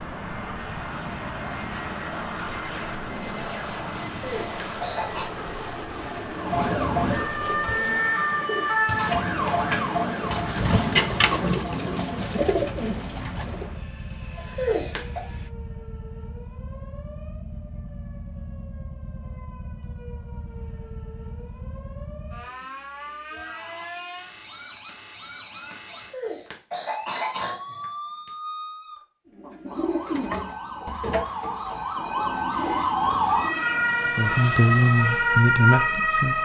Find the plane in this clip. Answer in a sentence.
The plane can be heard from 0.0 to 15.5 s and from 32.5 to 36.3 s.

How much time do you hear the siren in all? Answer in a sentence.
The siren can be heard for 36 seconds in total.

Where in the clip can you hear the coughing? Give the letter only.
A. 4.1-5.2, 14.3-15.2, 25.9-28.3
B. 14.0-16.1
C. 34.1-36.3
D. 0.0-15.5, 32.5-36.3
A.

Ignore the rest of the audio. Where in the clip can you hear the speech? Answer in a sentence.
The speech can be heard from 34.1 to 36.3 s.